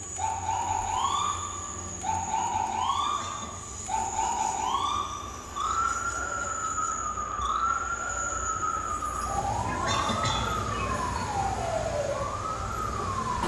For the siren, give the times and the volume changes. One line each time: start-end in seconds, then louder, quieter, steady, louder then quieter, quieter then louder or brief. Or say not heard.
0.0-13.4 steady.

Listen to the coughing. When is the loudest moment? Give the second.
10 s.